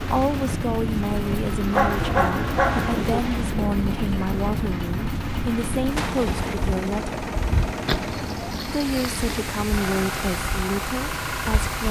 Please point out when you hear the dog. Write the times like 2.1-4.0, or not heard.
1.7-3.2, 7.8-9.2.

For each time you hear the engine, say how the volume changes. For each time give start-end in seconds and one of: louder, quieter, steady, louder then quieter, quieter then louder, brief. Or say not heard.
0.0-11.8 steady.